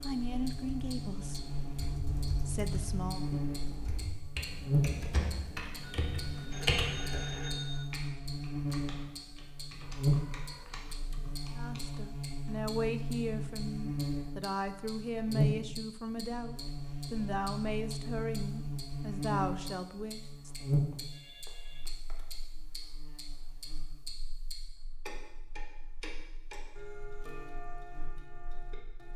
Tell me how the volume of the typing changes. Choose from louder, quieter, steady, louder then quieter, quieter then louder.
louder then quieter.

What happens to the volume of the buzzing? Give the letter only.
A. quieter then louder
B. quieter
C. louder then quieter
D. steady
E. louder
B.